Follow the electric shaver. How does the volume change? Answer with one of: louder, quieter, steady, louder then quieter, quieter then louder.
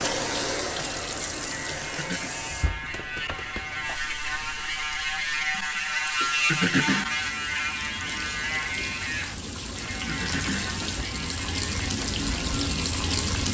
louder then quieter.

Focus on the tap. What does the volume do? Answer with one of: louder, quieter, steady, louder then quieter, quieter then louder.
quieter then louder.